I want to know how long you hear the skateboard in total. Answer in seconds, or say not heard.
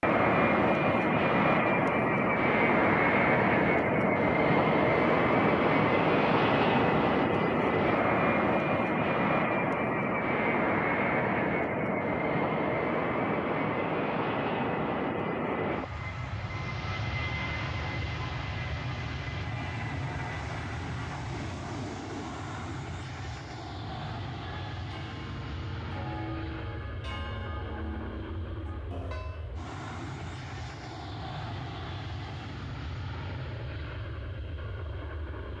not heard.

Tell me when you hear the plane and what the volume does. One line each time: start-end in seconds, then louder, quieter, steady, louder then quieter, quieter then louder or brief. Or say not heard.
0.0-35.5 quieter.